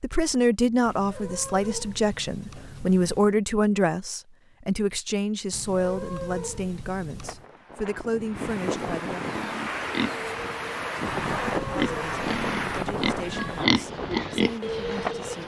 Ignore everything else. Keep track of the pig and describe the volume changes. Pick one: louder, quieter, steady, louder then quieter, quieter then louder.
quieter then louder.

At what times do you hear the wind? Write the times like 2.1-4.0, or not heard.
7.2-15.4.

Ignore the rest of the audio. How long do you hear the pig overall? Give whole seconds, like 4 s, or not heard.
6 s.